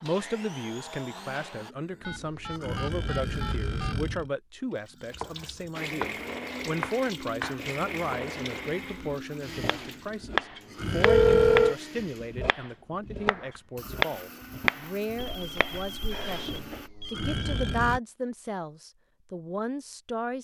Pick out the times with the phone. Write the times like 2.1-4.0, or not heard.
2.0-4.0, 11.0-11.8, 15.2-17.6.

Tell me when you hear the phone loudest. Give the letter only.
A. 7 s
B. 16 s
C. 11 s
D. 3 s
C.